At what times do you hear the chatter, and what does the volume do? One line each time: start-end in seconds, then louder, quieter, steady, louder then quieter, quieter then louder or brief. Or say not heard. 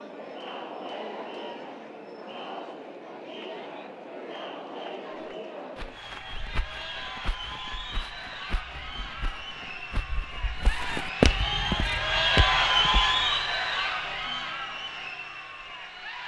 0.0-16.2 louder.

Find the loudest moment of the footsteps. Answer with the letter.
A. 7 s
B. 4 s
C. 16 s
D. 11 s
D.